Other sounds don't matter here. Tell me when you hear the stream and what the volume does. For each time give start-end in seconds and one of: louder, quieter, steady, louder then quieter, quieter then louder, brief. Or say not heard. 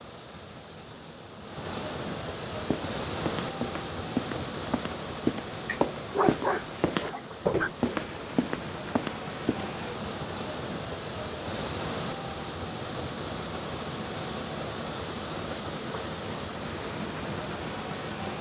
0.0-18.3 steady.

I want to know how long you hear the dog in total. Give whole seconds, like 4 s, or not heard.
2 s.